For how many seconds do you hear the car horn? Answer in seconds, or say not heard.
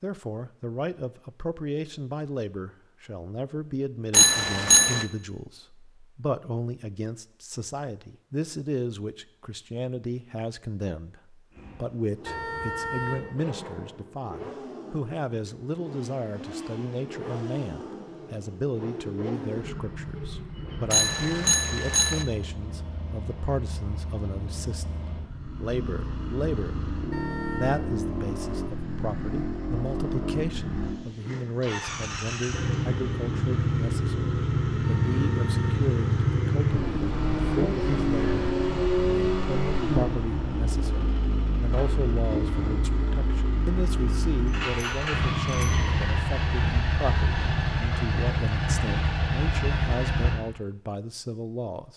3 s.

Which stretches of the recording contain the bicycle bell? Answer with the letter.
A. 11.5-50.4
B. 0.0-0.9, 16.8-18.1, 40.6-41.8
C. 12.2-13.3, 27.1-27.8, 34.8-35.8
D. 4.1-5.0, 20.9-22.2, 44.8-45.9
D.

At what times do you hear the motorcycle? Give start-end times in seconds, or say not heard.
11.5-50.4.